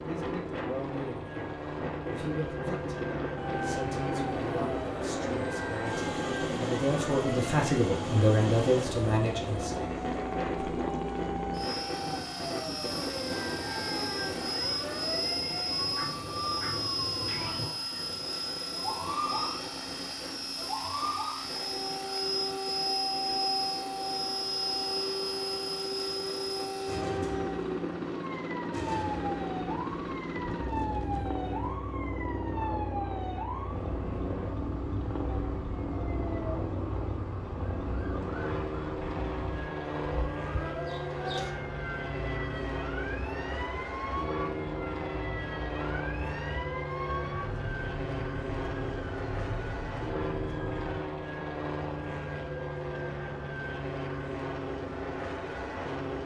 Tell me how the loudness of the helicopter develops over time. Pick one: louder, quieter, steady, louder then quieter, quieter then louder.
steady.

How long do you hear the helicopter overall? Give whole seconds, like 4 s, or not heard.
56 s.